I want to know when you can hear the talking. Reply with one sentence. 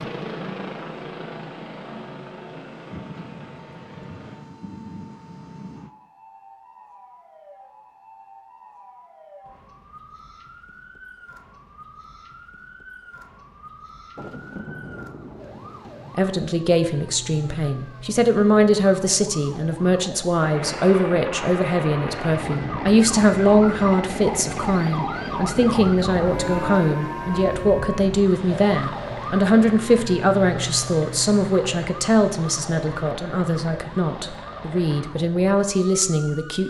The talking can be heard from 16.1 to 36.6 s.